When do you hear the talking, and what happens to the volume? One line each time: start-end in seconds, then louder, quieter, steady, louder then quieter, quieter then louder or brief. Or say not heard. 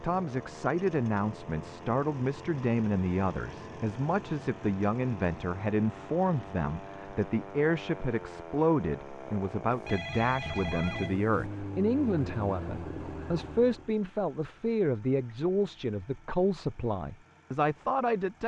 0.0-18.4 steady.